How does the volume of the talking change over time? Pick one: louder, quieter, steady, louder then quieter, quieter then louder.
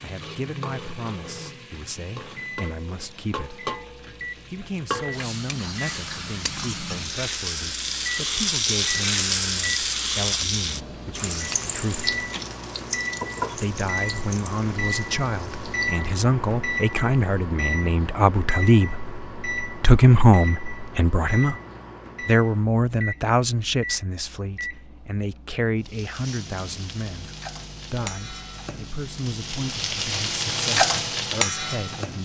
louder then quieter.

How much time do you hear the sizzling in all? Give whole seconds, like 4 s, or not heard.
22 s.